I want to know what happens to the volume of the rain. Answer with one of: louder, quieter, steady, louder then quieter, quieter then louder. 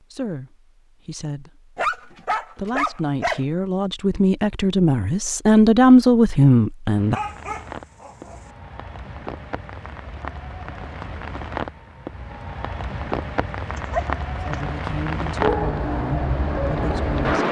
louder.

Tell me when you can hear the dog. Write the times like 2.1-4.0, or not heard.
1.8-3.4, 7.1-8.4, 13.8-14.6.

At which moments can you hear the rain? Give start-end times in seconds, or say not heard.
7.0-17.4.